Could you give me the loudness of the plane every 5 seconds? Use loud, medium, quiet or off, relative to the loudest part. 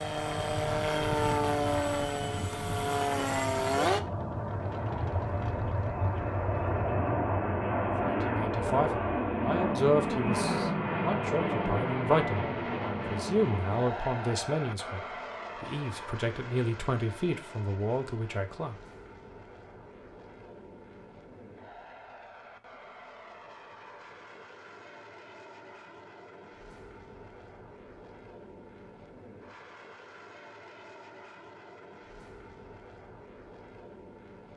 loud, loud, loud, quiet, quiet, quiet, quiet.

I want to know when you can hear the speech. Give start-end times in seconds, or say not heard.
8.0-18.8.